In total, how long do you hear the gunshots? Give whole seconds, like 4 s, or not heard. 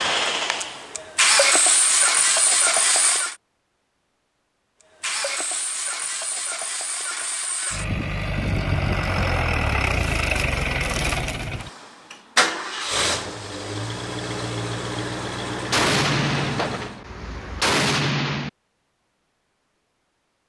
3 s.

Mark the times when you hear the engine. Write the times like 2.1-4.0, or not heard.
0.0-3.4, 5.0-17.0.